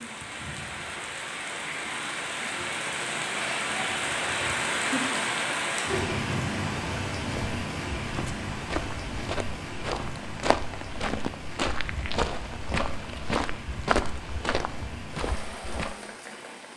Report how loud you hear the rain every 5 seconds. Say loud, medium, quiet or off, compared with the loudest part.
loud, loud, medium, medium.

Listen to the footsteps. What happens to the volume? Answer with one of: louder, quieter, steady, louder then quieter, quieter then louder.
louder then quieter.